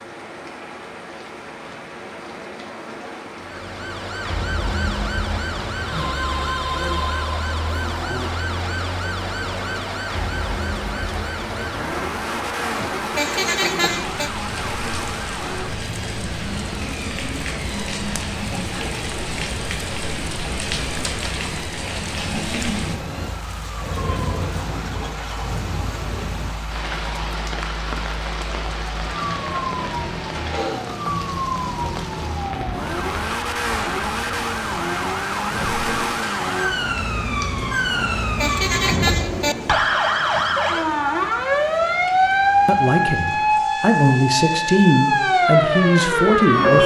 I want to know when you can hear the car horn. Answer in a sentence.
The car horn can be heard from 12.8 to 14.3 s and from 38.0 to 39.5 s.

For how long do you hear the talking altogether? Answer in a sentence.
The talking can be heard for 4 seconds in total.